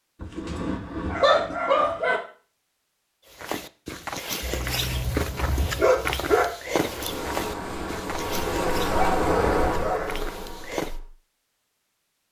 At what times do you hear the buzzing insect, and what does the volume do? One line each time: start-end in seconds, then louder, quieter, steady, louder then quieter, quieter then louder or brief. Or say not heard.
6.6-11.1 louder then quieter.